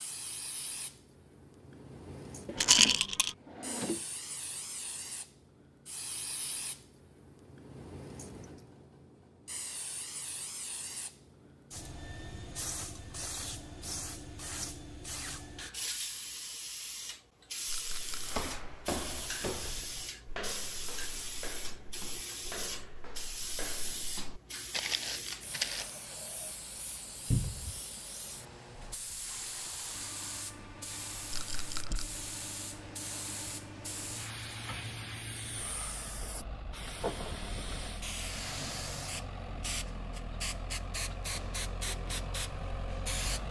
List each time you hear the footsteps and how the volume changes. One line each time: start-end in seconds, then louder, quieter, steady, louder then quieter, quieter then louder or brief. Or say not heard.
18.2-26.0 quieter then louder.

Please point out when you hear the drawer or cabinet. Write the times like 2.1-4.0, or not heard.
2.5-4.0, 27.3-27.8.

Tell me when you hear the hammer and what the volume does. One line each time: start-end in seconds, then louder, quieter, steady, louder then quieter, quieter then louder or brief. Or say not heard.
not heard.